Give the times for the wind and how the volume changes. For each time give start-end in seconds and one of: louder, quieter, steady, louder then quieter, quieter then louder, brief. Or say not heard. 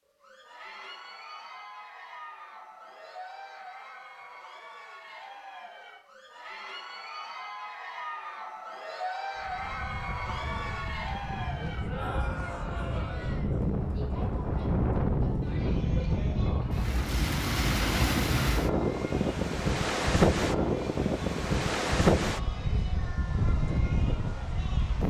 9.3-25.0 louder.